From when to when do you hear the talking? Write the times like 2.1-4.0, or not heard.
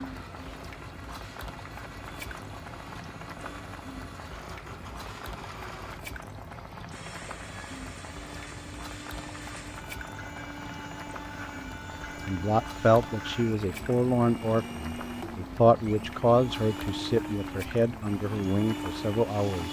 12.2-19.6.